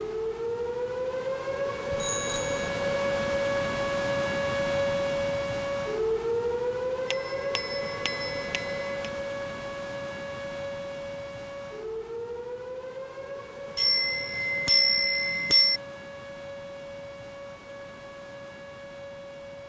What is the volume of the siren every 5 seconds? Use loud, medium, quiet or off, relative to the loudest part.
loud, loud, medium, quiet.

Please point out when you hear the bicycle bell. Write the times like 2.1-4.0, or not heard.
1.9-2.7, 7.1-8.9, 13.8-15.8.